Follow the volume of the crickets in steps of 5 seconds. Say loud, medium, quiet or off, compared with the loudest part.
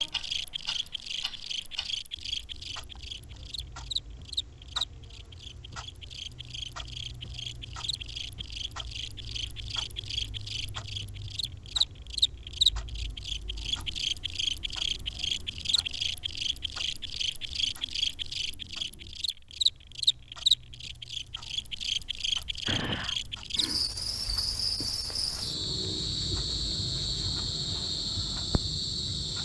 medium, medium, loud, loud, loud, loud.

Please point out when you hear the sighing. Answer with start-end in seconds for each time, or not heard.
22.6-23.1.